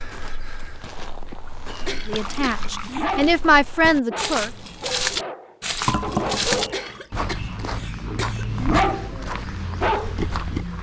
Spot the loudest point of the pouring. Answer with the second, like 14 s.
6 s.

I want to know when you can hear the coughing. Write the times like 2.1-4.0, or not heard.
1.6-3.1, 6.5-8.7.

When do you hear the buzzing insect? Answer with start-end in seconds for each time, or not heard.
not heard.